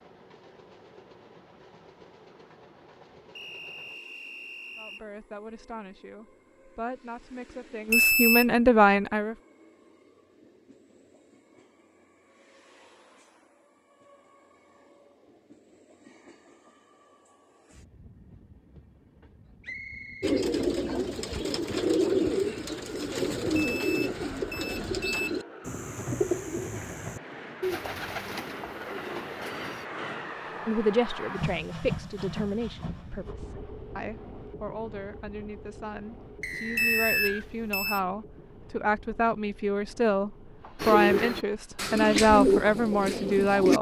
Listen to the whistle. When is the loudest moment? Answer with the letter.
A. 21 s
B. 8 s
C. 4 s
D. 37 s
D.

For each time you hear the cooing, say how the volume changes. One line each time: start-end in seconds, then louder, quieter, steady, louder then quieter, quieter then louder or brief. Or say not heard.
20.2-29.9 quieter
40.8-43.7 brief.